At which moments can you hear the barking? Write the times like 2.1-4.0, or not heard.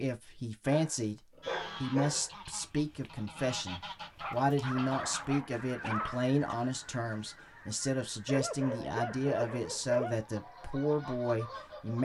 0.7-2.4, 4.2-6.2, 8.2-10.2.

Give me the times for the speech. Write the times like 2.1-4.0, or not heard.
0.0-1.2, 1.8-11.9.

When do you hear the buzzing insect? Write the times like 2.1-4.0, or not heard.
not heard.